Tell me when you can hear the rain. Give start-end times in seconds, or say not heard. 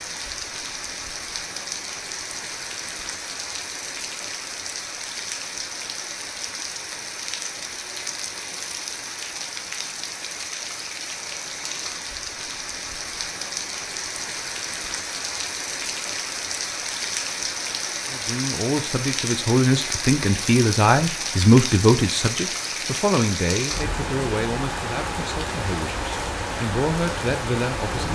0.0-28.1.